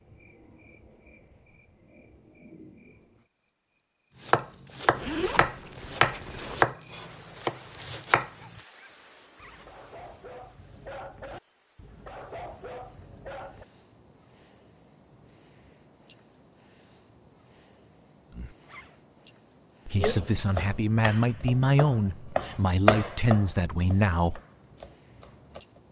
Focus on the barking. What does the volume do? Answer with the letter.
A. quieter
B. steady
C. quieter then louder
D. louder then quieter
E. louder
E.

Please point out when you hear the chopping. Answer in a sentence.
The chopping can be heard from 4.2 to 8.6 s and from 19.9 to 25.6 s.